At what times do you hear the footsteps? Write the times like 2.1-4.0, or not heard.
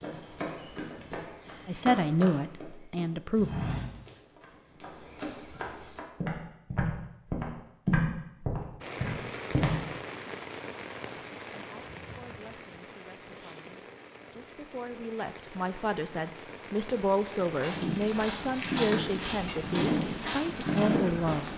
0.0-9.8, 17.6-21.5.